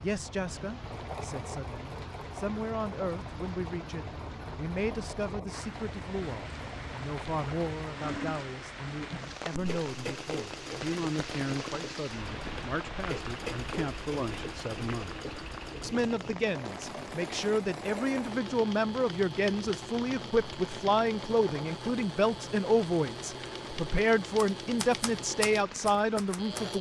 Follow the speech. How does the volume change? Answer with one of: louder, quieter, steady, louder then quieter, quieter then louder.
louder.